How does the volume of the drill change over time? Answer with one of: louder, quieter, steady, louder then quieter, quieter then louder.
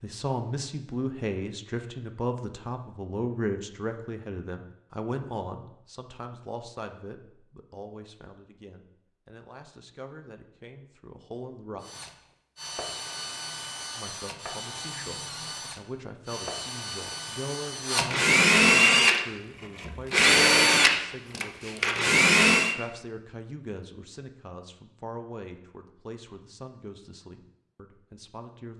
louder.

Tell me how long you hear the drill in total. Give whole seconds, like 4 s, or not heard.
11 s.